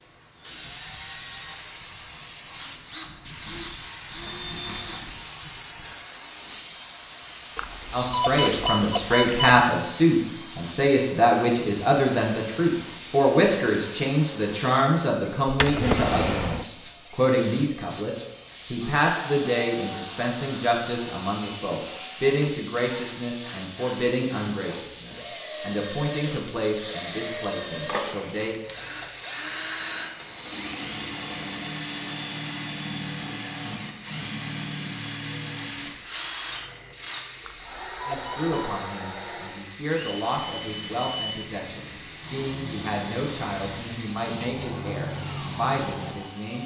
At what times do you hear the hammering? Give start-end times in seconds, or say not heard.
not heard.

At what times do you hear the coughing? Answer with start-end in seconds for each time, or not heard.
not heard.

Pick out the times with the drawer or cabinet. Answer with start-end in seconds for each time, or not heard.
15.4-16.6.